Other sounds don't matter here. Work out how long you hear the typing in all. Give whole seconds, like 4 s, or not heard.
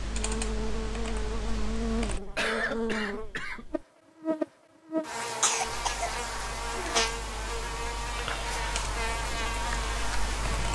7 s.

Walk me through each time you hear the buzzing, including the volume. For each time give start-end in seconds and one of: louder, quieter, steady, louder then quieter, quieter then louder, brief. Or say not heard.
0.0-10.7 steady.